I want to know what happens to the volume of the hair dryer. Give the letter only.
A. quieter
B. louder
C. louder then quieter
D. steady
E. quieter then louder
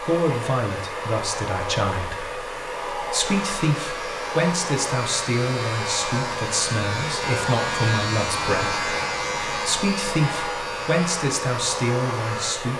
D.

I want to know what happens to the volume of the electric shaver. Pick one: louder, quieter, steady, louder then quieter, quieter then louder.
louder then quieter.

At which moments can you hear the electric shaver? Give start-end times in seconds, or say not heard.
3.2-12.6.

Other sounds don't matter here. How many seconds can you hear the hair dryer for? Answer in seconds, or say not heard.
13 s.